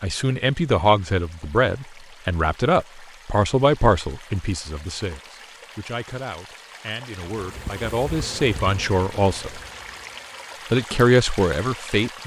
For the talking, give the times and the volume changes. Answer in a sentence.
The talking can be heard from 0.0 to 9.6 s, getting quieter then louder; and briefly from 10.7 to 12.2 s.